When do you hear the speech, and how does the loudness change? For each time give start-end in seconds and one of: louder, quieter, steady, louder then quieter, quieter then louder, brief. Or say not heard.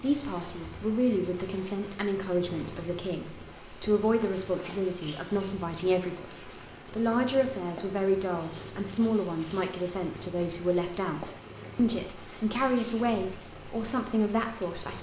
0.0-14.9 steady.